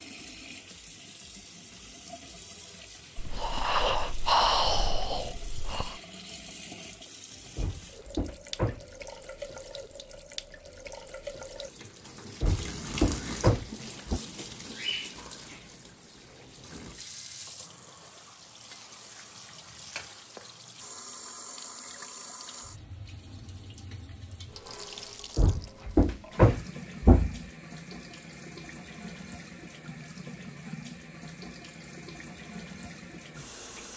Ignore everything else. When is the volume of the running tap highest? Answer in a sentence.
The loudest moment of the running tap is at 13 seconds.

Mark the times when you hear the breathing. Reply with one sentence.
The breathing can be heard from 3.1 to 6.0 s.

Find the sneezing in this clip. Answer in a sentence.
The sneezing can't be heard in this clip.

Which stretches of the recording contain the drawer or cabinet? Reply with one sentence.
You can hear the drawer or cabinet from 7.5 to 8.8 s, from 12.4 to 14.2 s and from 25.4 to 27.4 s.